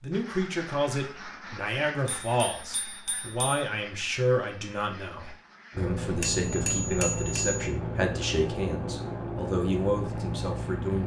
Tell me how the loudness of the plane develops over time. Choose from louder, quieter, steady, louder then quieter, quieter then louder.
steady.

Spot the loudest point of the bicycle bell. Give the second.
7 s.